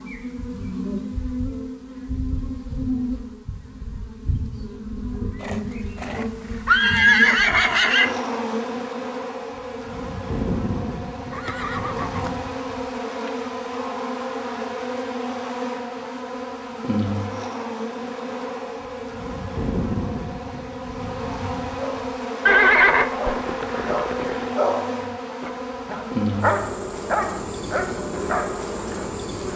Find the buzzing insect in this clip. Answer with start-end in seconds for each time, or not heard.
0.0-29.5.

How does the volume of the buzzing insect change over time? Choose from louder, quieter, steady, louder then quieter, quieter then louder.
steady.